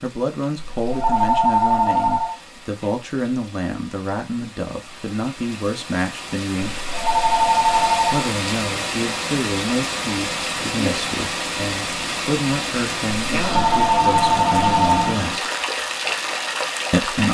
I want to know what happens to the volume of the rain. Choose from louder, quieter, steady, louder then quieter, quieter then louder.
louder.